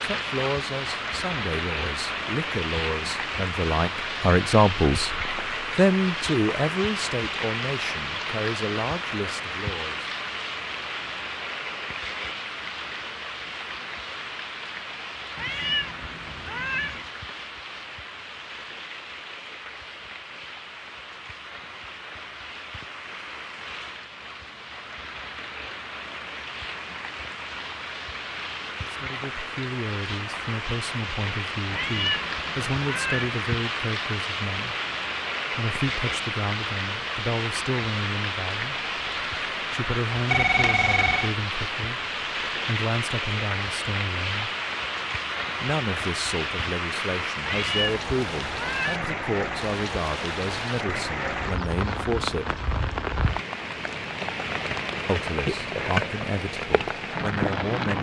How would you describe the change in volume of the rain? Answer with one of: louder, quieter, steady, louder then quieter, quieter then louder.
quieter then louder.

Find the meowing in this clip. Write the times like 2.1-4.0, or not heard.
15.3-17.1, 31.7-33.4, 47.4-49.1.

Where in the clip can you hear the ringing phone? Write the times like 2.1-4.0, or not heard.
40.2-41.4.